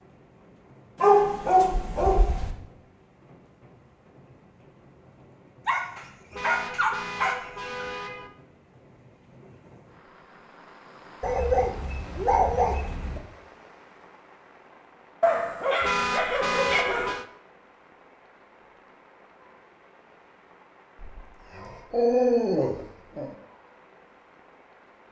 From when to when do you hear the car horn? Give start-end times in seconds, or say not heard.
6.3-8.3, 15.8-17.2.